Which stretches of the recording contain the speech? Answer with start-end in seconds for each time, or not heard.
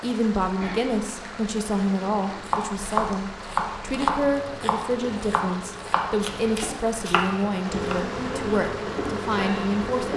0.0-10.1.